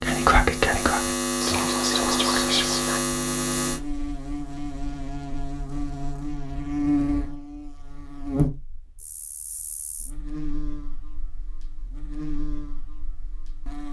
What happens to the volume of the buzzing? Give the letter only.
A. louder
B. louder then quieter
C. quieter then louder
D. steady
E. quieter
E.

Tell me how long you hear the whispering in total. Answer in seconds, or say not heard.
3 s.